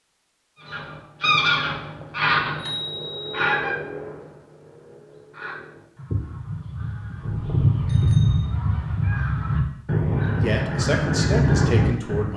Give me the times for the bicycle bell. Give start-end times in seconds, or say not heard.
2.5-3.5, 7.2-8.5.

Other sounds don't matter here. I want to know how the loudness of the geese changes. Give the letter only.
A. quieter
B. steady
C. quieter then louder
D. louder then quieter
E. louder
C.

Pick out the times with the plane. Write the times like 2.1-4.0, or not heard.
not heard.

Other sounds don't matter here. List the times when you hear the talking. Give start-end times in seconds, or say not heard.
10.4-12.3.